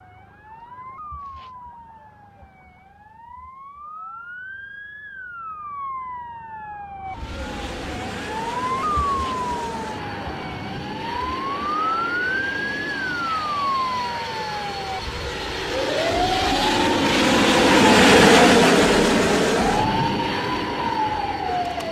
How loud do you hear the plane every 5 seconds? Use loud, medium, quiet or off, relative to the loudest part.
off, quiet, quiet, loud, medium.